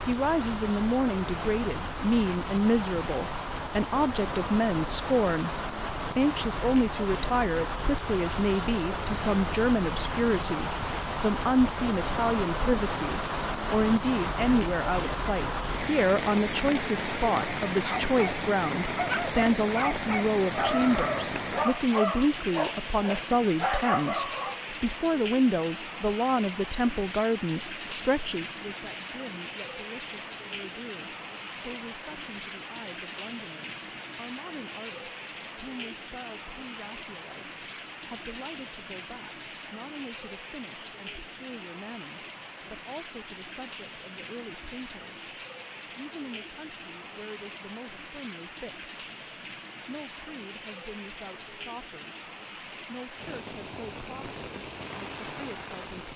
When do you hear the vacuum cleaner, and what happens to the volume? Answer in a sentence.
The vacuum cleaner can't be heard in this clip.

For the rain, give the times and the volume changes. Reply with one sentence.
You can hear the rain from 0.0 to 56.1 s, getting quieter.